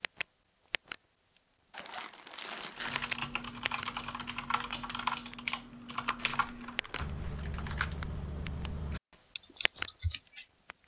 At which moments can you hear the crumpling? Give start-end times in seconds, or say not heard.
1.7-3.1, 6.2-7.4.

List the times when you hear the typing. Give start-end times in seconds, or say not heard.
2.8-10.8.